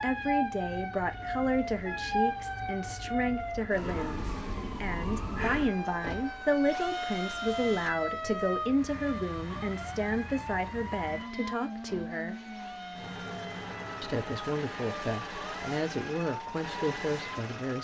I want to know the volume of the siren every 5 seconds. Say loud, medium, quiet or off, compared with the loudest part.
loud, loud, medium, medium.